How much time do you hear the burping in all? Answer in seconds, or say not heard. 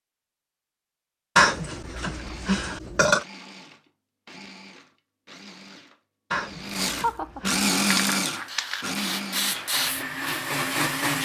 3 s.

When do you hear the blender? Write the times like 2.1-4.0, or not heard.
2.1-11.2.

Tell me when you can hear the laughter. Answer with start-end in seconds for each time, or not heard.
7.0-7.5.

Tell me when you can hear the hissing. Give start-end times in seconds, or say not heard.
7.8-11.2.